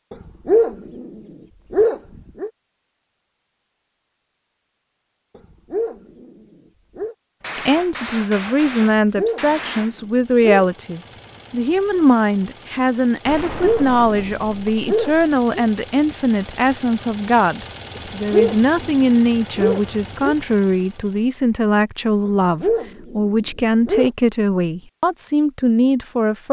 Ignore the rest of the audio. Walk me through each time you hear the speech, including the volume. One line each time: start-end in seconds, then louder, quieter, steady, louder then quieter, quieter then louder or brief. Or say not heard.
7.5-26.4 steady.